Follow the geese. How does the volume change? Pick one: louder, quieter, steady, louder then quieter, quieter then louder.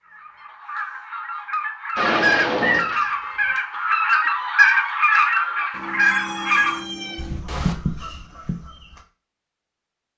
louder then quieter.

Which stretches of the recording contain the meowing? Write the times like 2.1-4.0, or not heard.
1.9-3.5, 5.7-7.8.